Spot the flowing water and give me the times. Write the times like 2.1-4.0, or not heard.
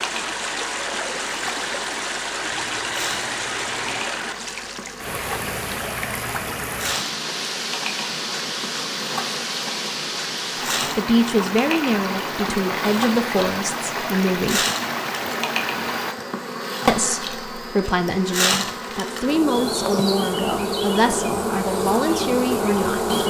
0.0-16.1.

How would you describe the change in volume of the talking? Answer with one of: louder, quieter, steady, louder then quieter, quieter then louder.
steady.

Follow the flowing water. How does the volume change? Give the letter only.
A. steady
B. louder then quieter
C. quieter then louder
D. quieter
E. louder
A.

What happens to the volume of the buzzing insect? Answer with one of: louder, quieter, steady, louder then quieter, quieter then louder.
louder.